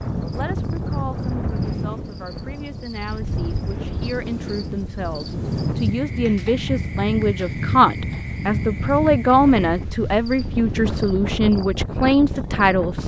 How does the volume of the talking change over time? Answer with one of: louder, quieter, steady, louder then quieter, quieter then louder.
louder.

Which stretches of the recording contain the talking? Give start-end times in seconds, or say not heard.
0.3-13.0.